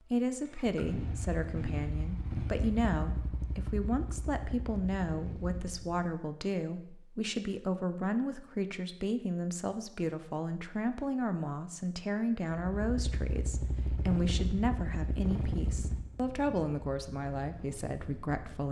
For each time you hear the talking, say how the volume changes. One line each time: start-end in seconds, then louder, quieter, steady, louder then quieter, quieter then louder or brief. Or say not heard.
0.1-18.6 steady.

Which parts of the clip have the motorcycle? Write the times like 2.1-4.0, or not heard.
0.0-6.0, 12.5-18.4.